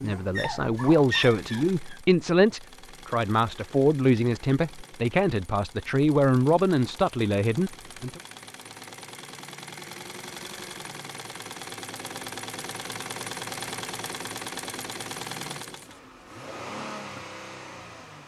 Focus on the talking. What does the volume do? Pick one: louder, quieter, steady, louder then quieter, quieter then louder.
steady.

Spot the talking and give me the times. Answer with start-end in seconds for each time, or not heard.
0.0-8.2.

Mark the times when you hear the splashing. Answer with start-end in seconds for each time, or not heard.
not heard.